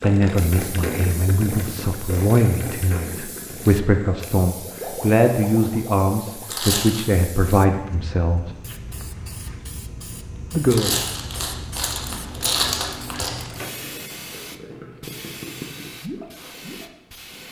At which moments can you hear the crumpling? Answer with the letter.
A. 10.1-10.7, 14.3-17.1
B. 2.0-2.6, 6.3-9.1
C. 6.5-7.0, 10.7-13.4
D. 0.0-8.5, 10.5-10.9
C.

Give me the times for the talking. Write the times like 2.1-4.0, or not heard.
0.0-8.5, 10.5-10.9.